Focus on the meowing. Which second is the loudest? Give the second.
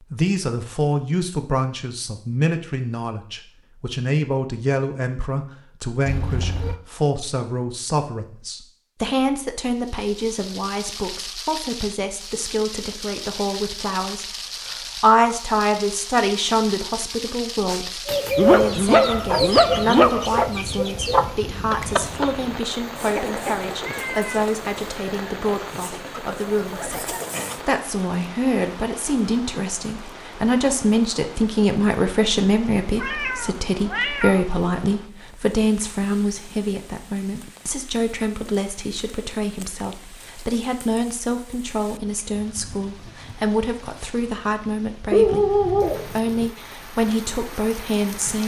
34 s.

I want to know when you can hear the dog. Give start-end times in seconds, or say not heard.
17.7-20.4, 45.1-46.5.